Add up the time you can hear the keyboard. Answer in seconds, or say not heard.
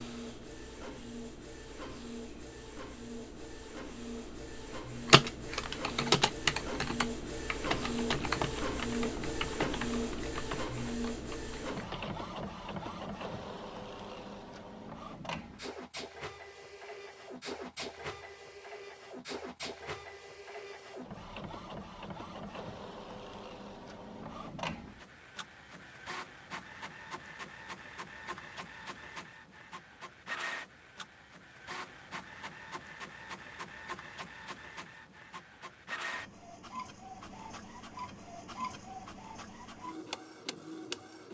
7 s.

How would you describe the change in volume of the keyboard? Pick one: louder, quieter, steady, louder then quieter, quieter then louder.
quieter.